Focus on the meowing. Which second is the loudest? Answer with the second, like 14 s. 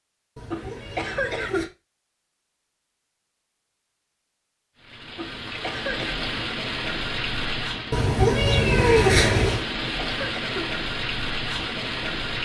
9 s.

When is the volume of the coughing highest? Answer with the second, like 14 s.
1 s.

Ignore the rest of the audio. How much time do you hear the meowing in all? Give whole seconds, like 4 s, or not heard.
3 s.